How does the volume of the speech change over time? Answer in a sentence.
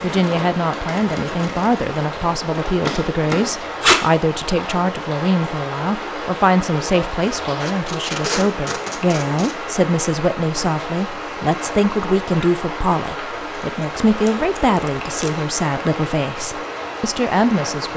The loudness of the speech stays about the same.